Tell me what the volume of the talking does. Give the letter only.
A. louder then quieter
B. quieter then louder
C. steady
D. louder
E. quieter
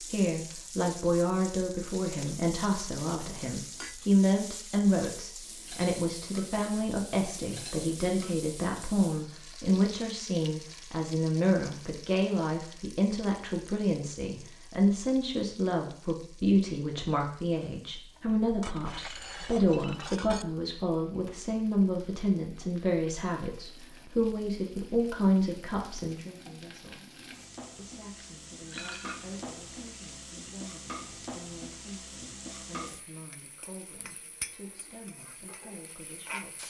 E.